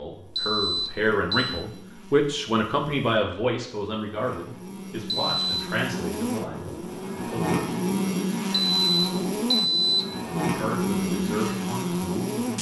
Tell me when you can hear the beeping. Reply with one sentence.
You can hear the beeping from 0.3 to 1.6 s, from 5.0 to 5.7 s and from 8.5 to 10.1 s.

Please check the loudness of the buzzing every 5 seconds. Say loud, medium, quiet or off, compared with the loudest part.
quiet, loud, loud.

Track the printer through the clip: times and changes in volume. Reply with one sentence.
The printer can't be heard in this clip.